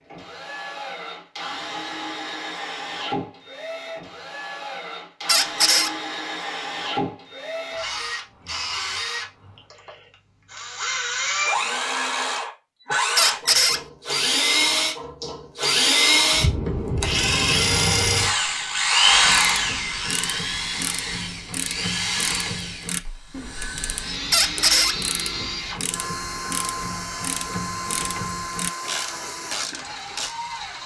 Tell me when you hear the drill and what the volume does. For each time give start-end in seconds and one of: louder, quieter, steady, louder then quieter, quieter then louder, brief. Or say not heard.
0.1-30.8 louder then quieter.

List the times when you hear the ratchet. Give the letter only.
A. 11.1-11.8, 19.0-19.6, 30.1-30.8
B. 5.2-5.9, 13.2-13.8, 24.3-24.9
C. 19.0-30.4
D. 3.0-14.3
C.